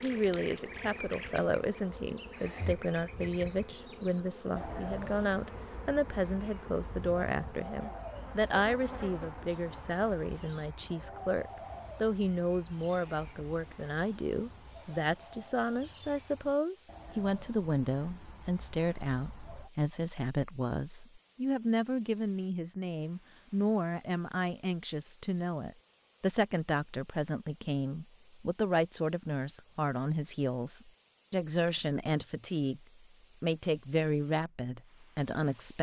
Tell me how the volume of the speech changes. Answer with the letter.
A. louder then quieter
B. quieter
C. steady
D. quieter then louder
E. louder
C.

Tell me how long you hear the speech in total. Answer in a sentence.
The speech can be heard for 36 seconds in total.